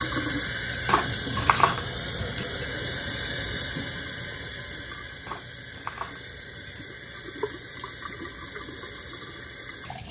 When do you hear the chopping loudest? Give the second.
2 s.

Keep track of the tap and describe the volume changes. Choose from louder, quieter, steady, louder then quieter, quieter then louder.
quieter.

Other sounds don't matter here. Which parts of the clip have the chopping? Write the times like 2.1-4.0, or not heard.
0.8-2.5, 5.2-6.8.